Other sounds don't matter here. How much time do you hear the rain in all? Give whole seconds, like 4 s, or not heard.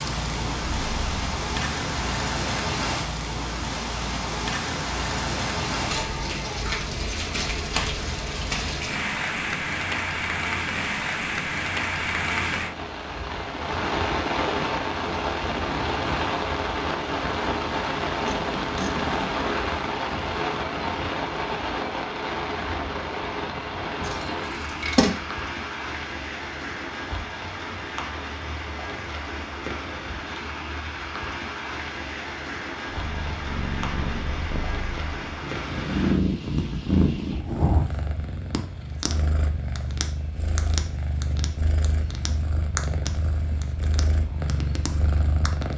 36 s.